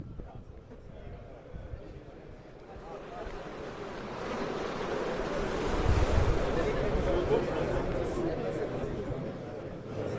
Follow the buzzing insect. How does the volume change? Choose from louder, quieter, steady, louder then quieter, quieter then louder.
louder then quieter.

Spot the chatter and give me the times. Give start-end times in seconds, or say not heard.
0.0-10.1.